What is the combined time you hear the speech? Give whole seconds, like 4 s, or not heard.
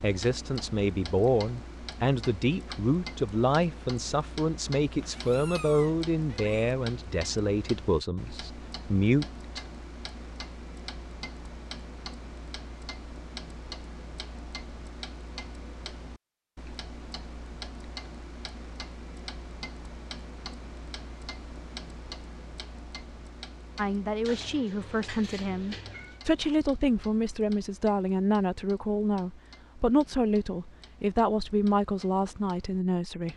19 s.